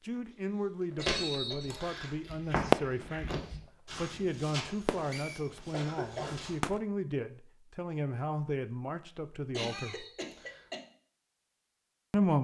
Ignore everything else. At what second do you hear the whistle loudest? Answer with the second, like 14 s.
1 s.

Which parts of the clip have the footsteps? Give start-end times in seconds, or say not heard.
1.1-6.6.